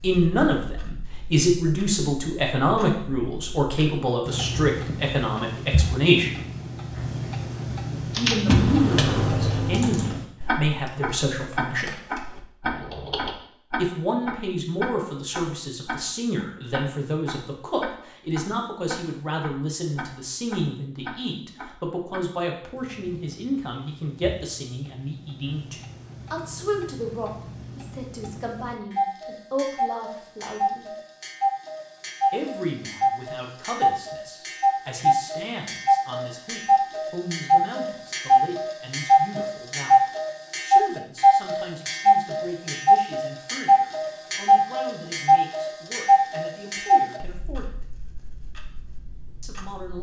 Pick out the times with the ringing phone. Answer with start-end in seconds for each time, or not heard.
not heard.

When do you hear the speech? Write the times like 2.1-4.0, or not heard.
0.0-6.3, 8.2-11.9, 13.8-30.9, 32.3-40.0, 40.6-47.9, 49.4-49.9.